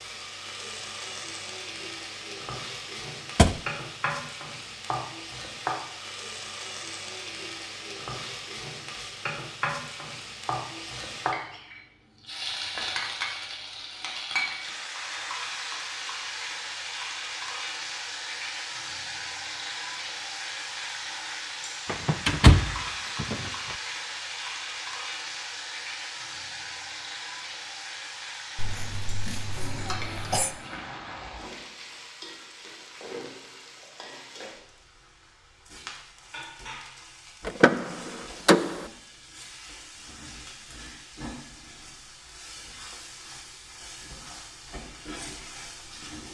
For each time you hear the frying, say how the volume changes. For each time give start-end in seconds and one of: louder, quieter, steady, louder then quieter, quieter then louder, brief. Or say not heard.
0.0-46.2 quieter.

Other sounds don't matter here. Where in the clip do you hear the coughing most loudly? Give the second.
30 s.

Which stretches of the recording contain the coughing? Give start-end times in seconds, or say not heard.
28.6-30.5.